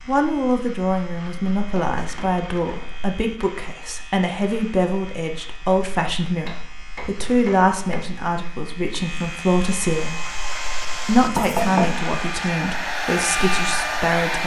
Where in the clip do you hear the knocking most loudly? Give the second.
12 s.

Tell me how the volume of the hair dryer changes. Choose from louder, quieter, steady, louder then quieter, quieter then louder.
louder.